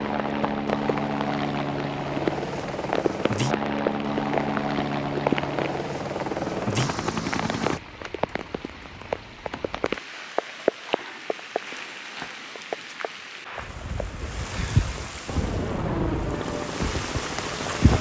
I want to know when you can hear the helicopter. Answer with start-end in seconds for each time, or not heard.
0.0-7.8, 15.2-17.9.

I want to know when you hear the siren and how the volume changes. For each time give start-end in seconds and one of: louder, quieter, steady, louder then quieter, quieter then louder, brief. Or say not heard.
not heard.